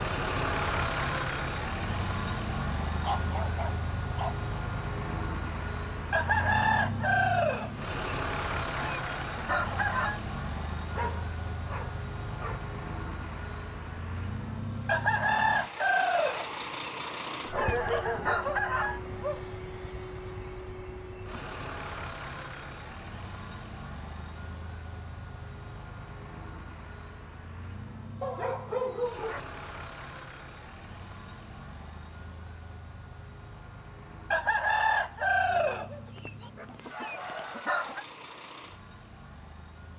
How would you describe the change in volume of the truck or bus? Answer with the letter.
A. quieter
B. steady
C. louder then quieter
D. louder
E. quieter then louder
A.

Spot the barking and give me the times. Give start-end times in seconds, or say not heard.
3.0-4.3, 10.9-12.6, 17.5-19.4, 28.2-29.4, 35.5-37.6.